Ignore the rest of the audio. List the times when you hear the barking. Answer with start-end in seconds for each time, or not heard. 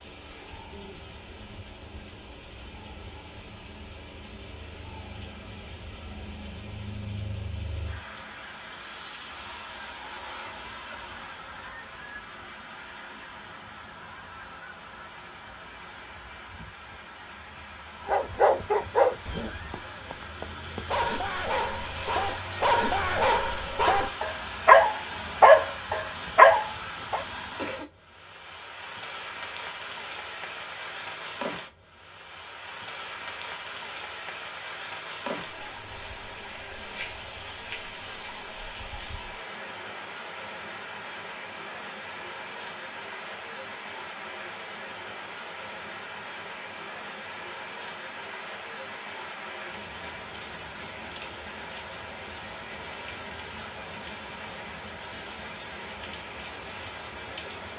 18.1-27.2.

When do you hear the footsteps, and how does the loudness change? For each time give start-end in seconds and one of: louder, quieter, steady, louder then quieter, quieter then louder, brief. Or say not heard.
not heard.